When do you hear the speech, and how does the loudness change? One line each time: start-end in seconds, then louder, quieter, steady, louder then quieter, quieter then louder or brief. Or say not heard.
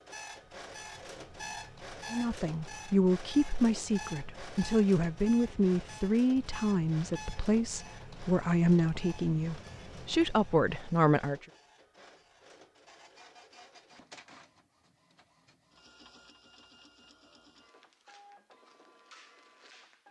2.1-11.4 steady.